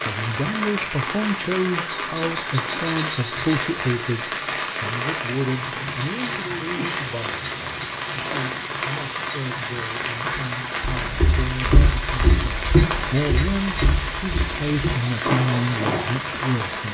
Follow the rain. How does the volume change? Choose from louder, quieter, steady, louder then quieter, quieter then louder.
steady.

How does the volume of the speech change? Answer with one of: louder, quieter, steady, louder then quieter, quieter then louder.
quieter then louder.